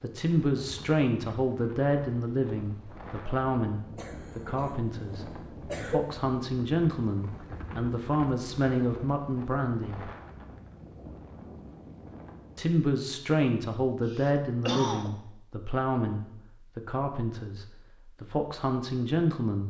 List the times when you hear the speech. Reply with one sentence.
The speech can be heard from 0.0 to 10.1 s and from 12.6 to 19.6 s.